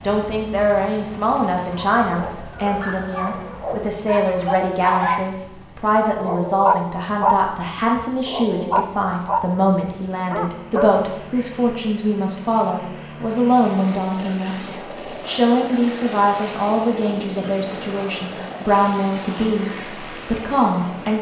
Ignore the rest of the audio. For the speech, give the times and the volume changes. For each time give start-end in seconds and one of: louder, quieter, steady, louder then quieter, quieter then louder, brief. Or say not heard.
0.0-21.1 steady.